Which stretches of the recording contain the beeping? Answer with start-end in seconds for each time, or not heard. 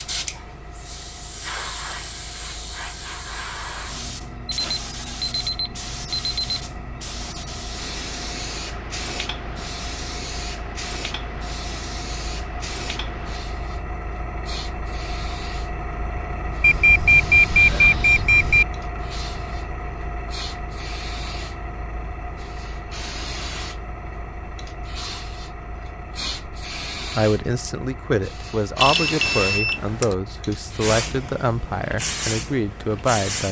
4.5-6.6, 16.6-18.6, 28.8-30.1.